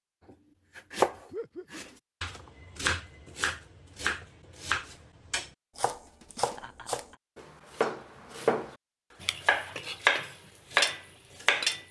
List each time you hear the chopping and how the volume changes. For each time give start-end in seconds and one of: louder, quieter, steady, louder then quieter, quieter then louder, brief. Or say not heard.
0.2-8.8 quieter
9.4-11.7 brief.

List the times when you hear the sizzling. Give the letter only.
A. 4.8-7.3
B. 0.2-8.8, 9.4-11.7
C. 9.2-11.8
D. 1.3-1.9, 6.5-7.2
C.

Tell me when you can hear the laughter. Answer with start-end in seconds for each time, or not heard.
1.3-1.9, 6.5-7.2.